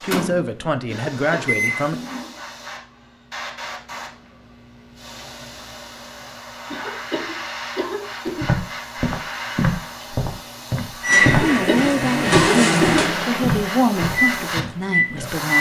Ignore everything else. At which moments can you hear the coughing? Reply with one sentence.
The coughing can be heard from 0.9 to 1.6 s, from 6.7 to 8.5 s and from 11.2 to 13.1 s.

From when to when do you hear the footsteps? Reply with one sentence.
The footsteps can be heard from 8.4 to 14.7 s.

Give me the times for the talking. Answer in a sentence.
The talking can be heard from 0.0 to 2.0 s and from 11.3 to 15.5 s.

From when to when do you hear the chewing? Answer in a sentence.
The chewing can't be heard in this clip.